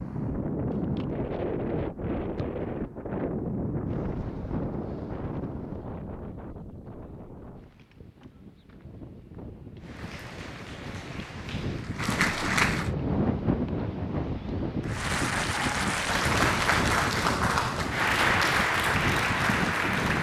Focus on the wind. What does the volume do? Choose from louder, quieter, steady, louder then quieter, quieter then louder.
quieter then louder.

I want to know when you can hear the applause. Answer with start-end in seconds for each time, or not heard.
9.8-12.9, 14.8-20.1.